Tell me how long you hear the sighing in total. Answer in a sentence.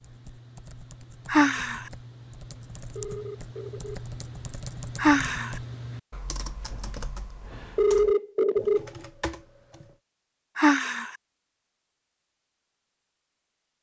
The sighing can be heard for 2 seconds in total.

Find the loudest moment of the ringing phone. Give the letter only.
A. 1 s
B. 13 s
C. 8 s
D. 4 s
C.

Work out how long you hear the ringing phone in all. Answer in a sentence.
The ringing phone can be heard for 2 seconds in total.